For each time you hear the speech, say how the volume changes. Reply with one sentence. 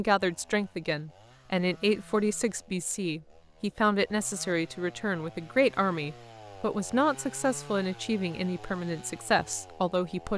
You can hear the speech from 0.0 to 10.3 s, at a steady volume.